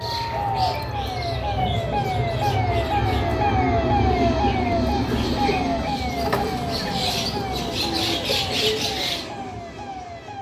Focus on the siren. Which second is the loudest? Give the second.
4 s.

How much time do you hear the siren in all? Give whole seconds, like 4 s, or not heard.
10 s.